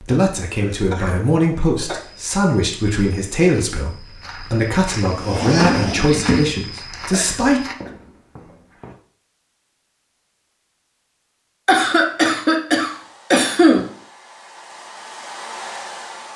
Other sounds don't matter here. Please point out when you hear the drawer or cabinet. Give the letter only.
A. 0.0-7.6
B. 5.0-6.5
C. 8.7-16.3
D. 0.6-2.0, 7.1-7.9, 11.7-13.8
B.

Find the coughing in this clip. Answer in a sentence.
You can hear the coughing from 0.6 to 2.0 s, from 7.1 to 7.9 s and from 11.7 to 13.8 s.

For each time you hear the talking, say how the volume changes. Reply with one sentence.
The talking can be heard from 0.0 to 7.6 s, at a steady volume.